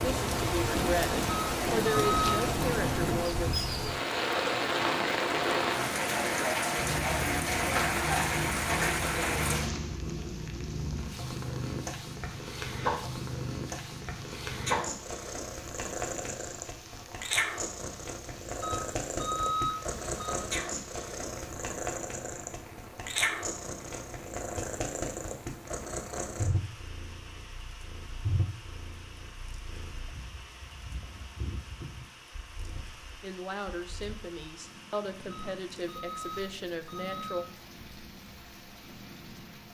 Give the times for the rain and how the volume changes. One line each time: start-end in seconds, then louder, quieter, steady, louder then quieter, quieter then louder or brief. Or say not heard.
0.0-39.6 quieter.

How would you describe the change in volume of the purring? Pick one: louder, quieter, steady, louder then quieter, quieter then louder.
quieter.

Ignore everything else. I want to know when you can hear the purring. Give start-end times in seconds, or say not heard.
6.8-39.6.